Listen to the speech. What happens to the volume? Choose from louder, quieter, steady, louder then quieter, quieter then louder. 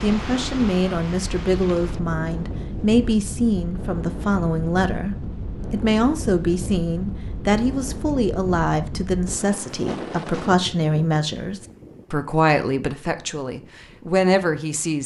steady.